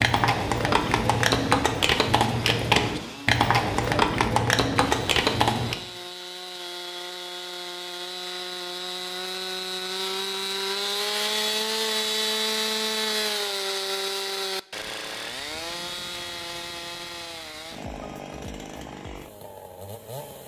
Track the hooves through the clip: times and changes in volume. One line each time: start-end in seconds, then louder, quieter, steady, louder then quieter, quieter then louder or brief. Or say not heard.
0.0-5.8 steady.